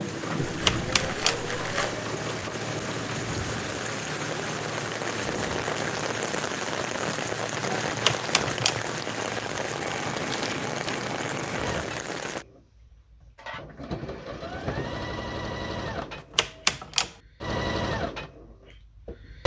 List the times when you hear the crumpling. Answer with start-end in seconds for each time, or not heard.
0.4-2.0, 10.2-11.1.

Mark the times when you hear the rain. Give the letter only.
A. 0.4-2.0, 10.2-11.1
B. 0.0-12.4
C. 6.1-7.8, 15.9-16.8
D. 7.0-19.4
B.